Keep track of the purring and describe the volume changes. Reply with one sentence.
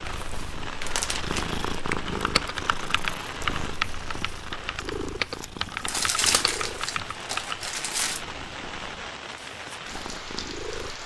The volume of the purring goes down.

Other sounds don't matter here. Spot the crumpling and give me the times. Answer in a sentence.
You can hear the crumpling from 0.8 to 1.4 s and from 5.8 to 8.2 s.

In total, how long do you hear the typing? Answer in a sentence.
The typing can be heard for 6 seconds in total.